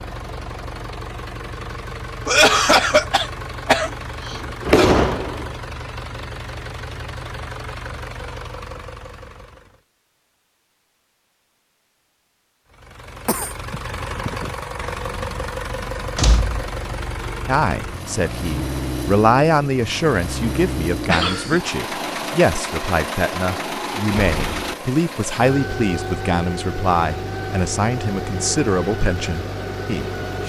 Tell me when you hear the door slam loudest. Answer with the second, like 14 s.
5 s.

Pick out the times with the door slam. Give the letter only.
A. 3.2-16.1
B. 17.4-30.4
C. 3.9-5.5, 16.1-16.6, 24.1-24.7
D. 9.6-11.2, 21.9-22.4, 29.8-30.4
C.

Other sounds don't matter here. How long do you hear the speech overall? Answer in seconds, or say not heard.
13 s.